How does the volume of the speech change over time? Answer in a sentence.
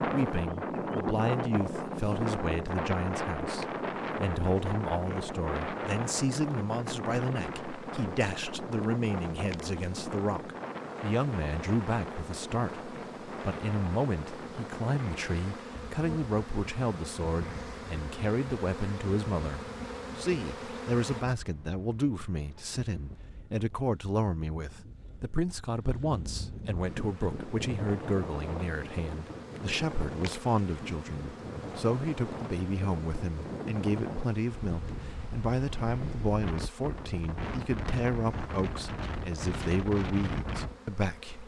The loudness of the speech stays about the same.